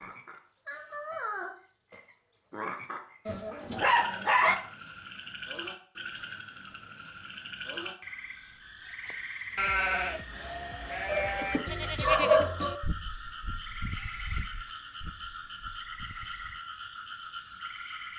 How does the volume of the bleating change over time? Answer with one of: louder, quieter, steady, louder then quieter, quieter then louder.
quieter.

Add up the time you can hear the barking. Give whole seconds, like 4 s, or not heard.
3 s.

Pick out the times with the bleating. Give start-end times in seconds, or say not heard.
9.1-16.6.